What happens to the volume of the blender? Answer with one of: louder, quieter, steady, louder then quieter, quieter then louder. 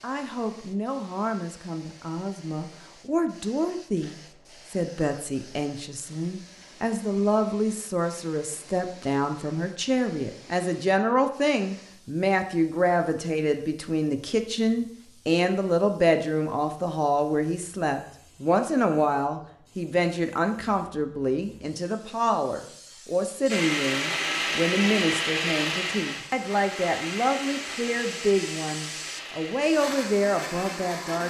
quieter.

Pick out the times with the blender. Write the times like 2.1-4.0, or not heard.
23.4-31.2.